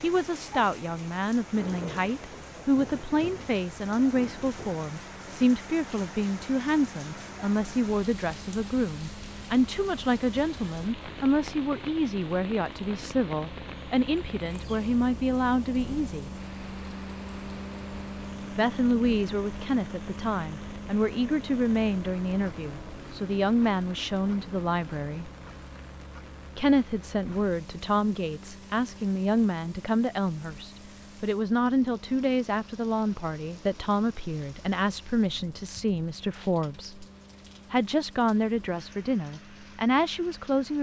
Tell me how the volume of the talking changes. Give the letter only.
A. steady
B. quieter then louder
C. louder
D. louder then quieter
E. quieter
A.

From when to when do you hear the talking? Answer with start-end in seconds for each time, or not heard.
0.0-16.3, 18.6-25.3, 26.6-37.0, 37.7-40.7.